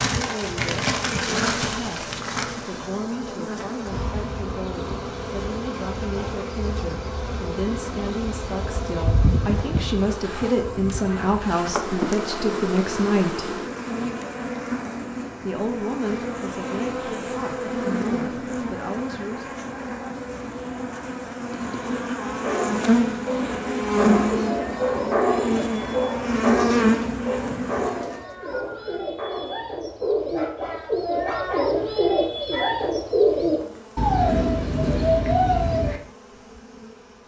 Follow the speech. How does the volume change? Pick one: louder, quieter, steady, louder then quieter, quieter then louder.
louder then quieter.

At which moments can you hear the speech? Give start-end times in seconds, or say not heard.
0.1-13.6, 15.4-19.4.